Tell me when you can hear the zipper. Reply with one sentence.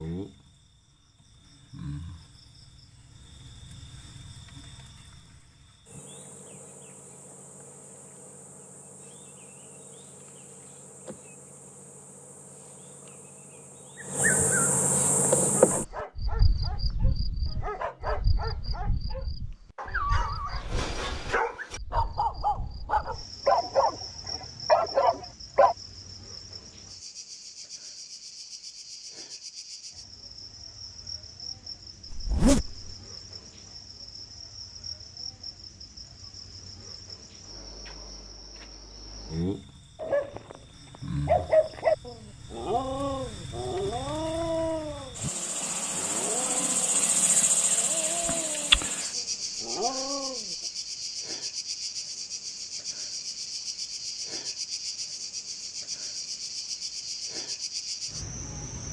You can hear the zipper from 32.1 to 32.9 s.